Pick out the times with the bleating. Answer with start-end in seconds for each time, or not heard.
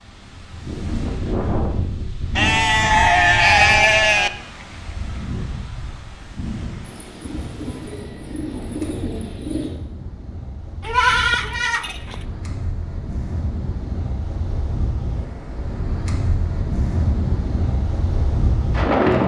2.4-4.3, 10.8-12.2.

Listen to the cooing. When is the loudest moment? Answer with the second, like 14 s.
9 s.